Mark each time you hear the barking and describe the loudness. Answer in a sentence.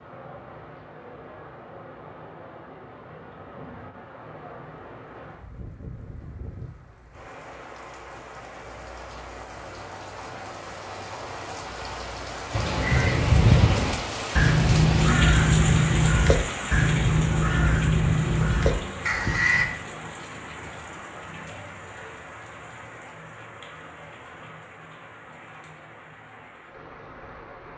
The barking can't be heard in this clip.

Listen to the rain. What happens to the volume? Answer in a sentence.
The loudness of the rain goes up, then down.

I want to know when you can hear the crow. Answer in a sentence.
The crow can be heard from 12.5 to 19.6 s.